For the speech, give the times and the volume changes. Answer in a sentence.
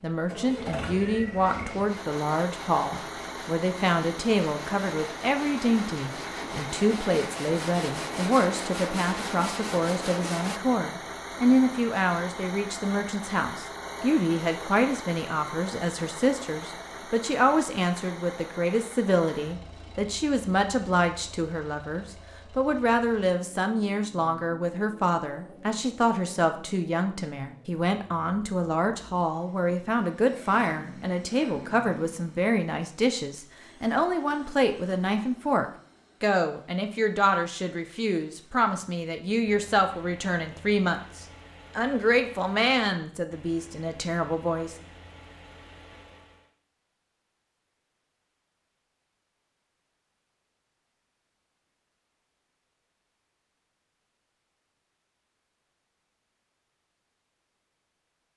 The speech can be heard from 0.0 to 44.8 s, at a steady volume.